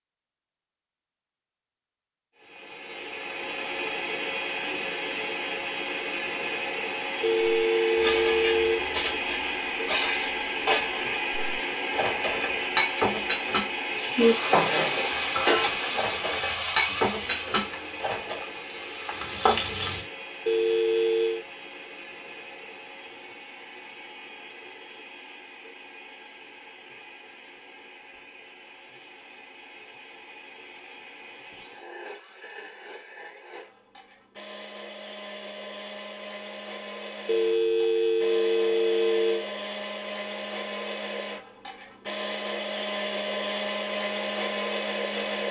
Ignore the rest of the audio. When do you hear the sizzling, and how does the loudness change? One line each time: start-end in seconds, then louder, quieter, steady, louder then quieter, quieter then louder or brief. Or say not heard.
13.9-20.1 quieter then louder.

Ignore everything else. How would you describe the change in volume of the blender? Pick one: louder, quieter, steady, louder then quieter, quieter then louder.
quieter then louder.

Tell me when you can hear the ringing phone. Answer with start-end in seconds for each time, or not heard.
7.2-8.8, 20.4-21.4, 37.2-39.5.